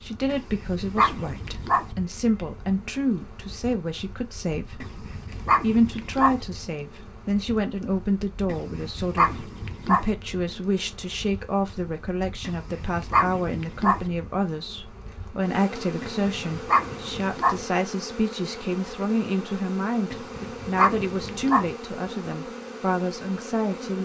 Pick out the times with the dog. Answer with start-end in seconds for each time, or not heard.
0.2-1.9, 4.8-6.4, 8.4-10.1, 12.4-14.1, 16.0-17.6, 20.1-21.8.